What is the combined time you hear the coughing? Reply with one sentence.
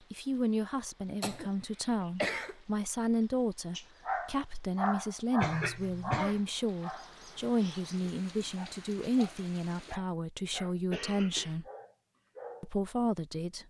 You can hear the coughing for 3 seconds altogether.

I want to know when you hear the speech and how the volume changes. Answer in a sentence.
You can hear the speech from 0.1 to 11.7 s, at a steady volume; and briefly from 12.6 to 13.6 s.